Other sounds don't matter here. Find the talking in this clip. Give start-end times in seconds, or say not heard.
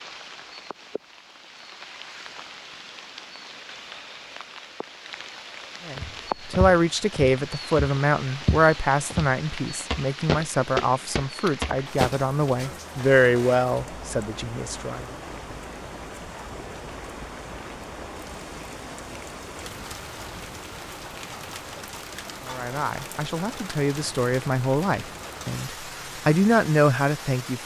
5.8-15.1, 22.4-27.6.